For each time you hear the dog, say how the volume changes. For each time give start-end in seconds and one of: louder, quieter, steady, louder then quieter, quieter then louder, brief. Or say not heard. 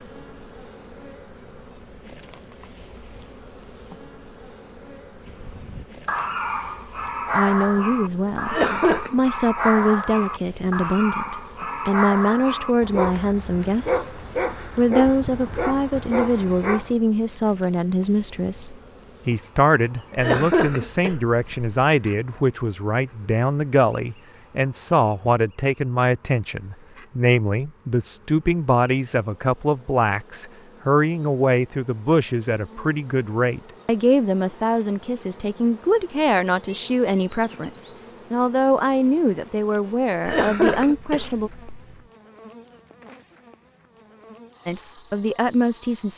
5.2-16.9 steady.